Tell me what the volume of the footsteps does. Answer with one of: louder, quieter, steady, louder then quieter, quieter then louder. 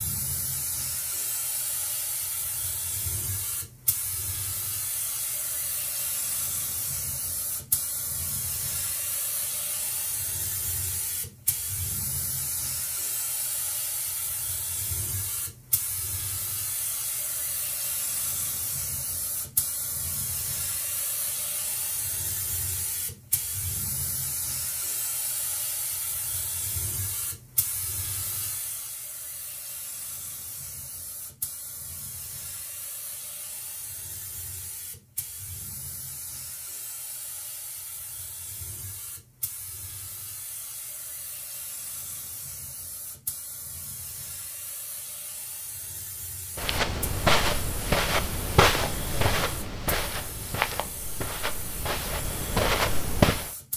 quieter then louder.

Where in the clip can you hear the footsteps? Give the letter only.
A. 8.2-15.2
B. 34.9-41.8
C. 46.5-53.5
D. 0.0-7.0
C.